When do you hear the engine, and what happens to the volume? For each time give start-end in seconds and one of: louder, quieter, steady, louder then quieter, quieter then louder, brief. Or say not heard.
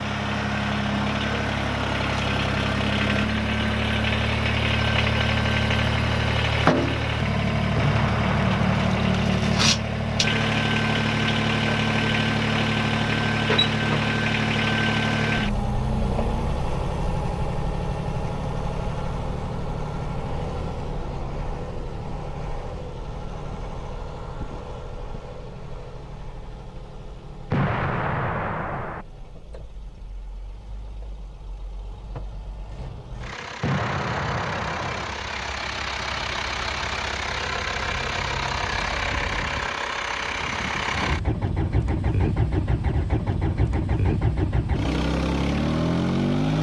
0.0-46.5 quieter then louder.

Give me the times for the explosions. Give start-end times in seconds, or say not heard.
7.8-9.1, 27.5-29.1, 33.6-35.1.